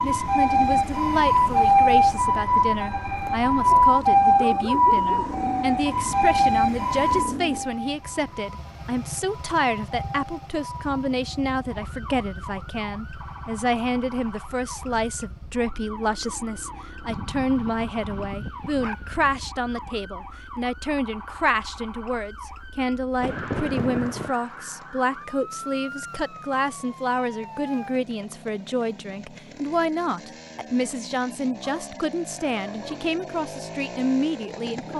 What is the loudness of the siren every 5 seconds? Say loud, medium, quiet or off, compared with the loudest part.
loud, medium, quiet, quiet, quiet, quiet, off.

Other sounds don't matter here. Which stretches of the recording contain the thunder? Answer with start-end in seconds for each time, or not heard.
23.2-24.4.